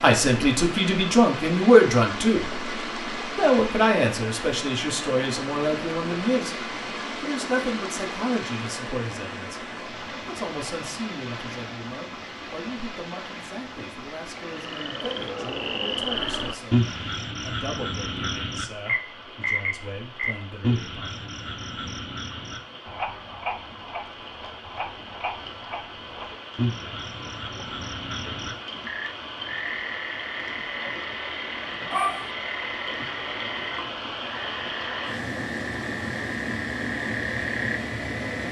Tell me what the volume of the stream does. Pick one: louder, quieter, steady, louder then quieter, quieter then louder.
quieter then louder.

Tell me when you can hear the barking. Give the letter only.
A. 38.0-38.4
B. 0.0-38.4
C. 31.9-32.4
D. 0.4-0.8
C.